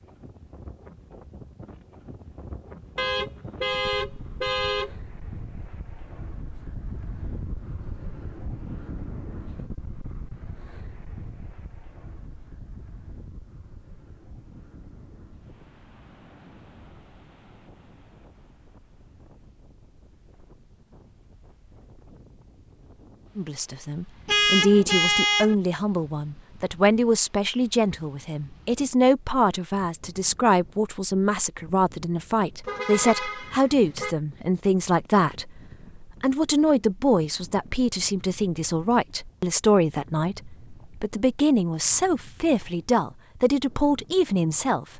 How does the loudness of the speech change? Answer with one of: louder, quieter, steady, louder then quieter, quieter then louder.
steady.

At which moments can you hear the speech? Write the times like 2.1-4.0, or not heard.
23.4-44.9.